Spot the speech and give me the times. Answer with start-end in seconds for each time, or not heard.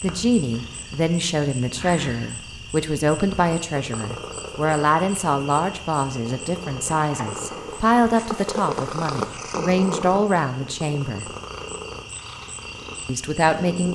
0.0-11.3, 13.1-13.9.